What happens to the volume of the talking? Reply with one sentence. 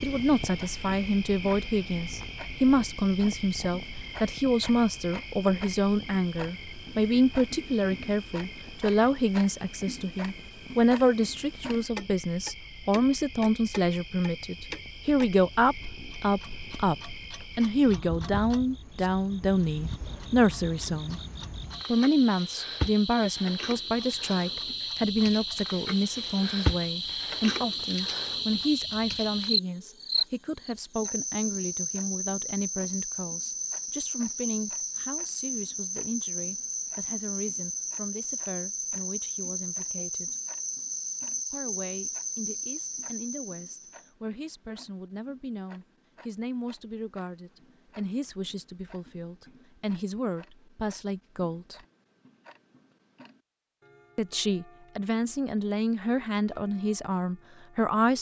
The volume of the talking goes down, then up.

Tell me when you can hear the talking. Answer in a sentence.
You can hear the talking from 0.0 to 21.2 s, from 21.9 to 40.4 s, from 41.5 to 51.8 s and from 54.1 to 58.1 s.